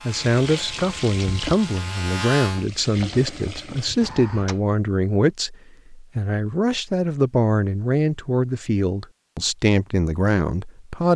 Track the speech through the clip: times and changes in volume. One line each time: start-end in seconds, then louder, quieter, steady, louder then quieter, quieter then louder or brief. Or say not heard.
0.1-11.1 steady.